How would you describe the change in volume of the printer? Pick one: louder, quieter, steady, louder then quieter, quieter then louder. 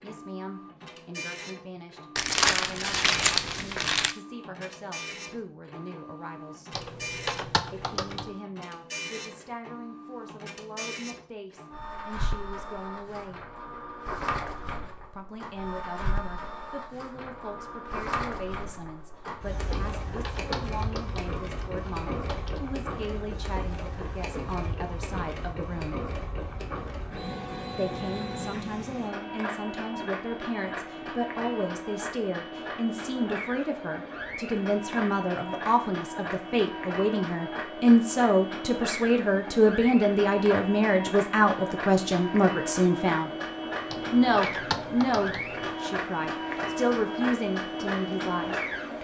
louder.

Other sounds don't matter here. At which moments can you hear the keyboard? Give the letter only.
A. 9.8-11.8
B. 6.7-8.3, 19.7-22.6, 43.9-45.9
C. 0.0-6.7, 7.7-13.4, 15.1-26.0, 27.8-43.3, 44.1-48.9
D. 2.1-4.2
B.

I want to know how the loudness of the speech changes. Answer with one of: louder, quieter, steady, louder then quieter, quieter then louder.
louder.